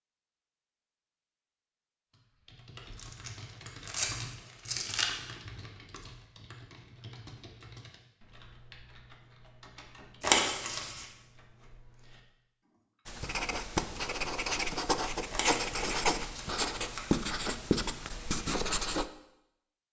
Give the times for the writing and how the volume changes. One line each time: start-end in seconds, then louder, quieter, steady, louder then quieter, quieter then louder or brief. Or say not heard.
13.1-19.1 steady.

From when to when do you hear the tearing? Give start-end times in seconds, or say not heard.
3.0-5.0, 10.2-11.1, 15.3-17.1.